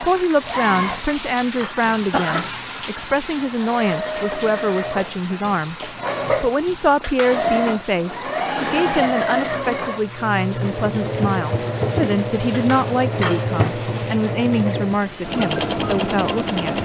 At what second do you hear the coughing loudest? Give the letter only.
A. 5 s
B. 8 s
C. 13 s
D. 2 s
D.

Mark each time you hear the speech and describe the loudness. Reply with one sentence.
You can hear the speech from 0.0 to 16.8 s, at a steady volume.